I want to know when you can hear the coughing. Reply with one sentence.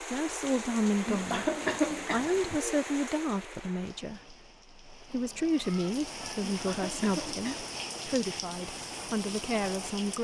The coughing can be heard from 1.1 to 2.6 s and from 6.5 to 7.7 s.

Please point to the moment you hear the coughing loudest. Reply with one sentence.
The loudest moment of the coughing is at 2 seconds.